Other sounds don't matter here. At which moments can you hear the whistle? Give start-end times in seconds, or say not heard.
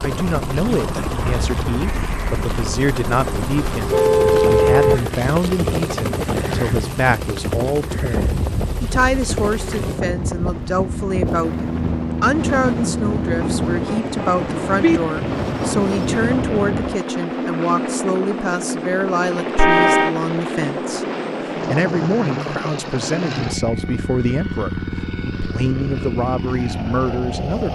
not heard.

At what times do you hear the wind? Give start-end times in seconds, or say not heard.
0.0-17.0.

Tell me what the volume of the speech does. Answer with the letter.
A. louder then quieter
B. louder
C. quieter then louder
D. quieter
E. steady
E.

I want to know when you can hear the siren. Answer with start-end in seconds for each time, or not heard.
not heard.